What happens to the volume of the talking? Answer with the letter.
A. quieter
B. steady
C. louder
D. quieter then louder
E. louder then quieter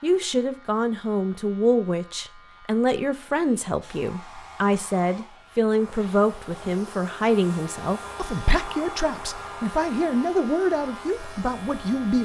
B.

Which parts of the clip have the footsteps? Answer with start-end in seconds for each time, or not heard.
not heard.